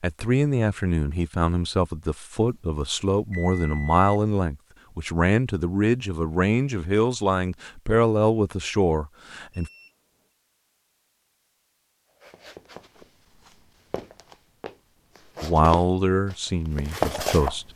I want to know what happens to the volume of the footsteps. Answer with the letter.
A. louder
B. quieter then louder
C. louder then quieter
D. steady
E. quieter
A.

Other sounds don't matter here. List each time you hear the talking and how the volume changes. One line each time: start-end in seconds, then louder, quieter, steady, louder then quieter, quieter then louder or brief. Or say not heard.
0.0-9.7 steady
15.4-17.6 brief.